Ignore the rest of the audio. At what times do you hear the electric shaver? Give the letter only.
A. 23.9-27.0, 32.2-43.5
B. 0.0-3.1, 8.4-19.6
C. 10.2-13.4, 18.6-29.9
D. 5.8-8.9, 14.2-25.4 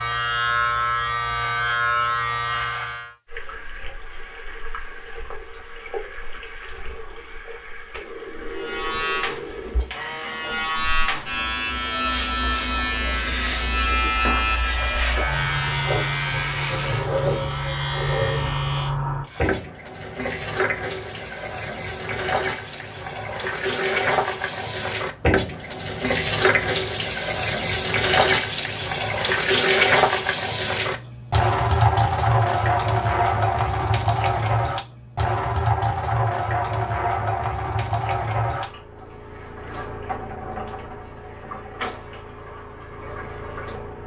B.